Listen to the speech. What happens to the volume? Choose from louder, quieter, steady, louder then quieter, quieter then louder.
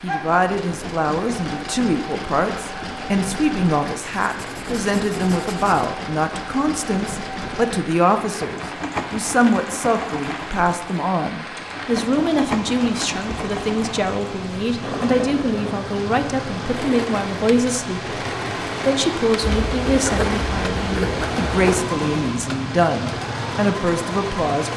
steady.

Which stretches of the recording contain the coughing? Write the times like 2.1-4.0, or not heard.
not heard.